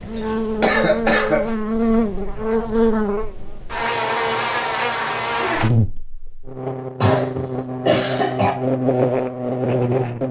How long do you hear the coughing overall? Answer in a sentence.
The coughing can be heard for 3 seconds in total.